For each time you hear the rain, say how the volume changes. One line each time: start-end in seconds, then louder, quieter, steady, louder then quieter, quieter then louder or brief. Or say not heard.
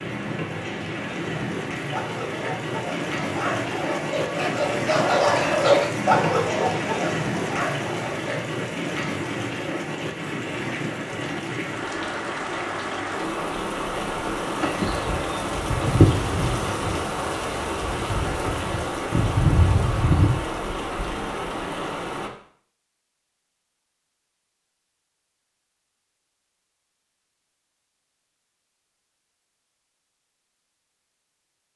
0.0-22.3 steady.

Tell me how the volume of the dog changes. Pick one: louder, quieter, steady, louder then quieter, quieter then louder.
louder then quieter.